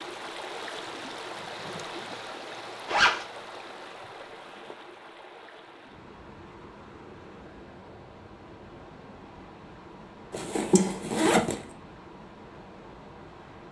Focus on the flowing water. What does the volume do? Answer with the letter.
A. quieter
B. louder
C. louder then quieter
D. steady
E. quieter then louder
A.